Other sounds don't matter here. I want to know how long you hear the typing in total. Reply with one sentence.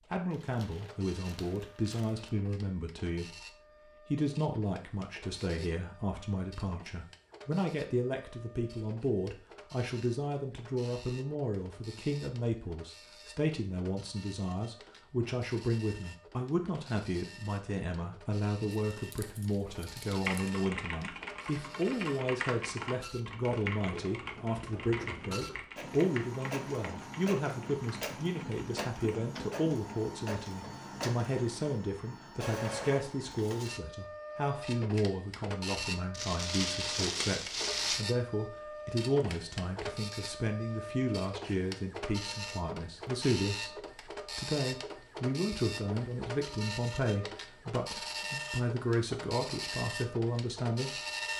The typing can be heard for 9 seconds in total.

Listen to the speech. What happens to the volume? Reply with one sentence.
The loudness of the speech stays about the same.